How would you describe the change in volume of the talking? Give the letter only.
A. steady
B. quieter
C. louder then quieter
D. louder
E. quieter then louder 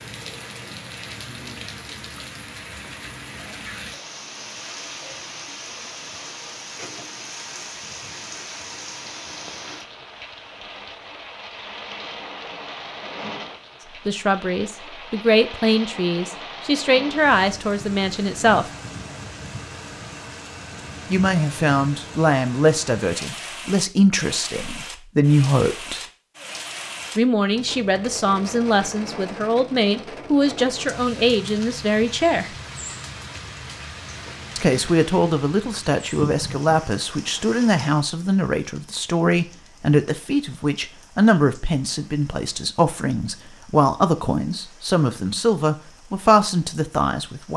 A.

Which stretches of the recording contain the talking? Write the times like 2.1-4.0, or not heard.
14.1-18.7, 21.1-26.1, 27.1-32.5, 34.5-47.5.